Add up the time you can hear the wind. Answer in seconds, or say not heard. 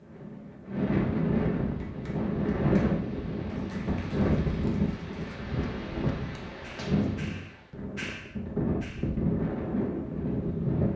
11 s.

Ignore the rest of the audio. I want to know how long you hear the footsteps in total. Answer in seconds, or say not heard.
not heard.